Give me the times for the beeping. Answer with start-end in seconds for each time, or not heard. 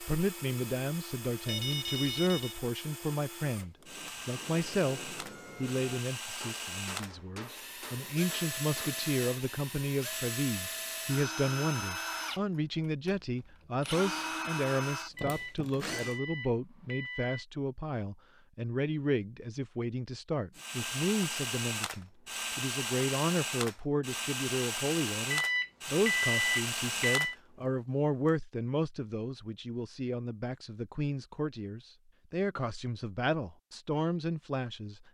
1.4-2.6, 15.2-17.4, 25.3-27.4.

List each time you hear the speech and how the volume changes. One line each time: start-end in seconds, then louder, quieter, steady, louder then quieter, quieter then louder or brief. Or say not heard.
0.0-35.0 steady.